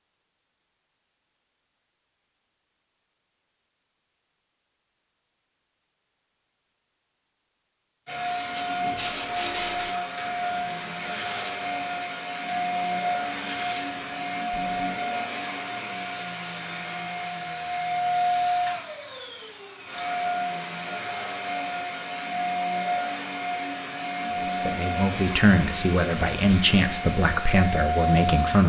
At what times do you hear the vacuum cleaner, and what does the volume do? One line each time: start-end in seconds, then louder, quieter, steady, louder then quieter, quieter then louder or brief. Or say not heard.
8.1-28.6 steady.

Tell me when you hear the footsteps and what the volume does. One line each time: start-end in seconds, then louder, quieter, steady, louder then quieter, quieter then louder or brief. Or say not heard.
not heard.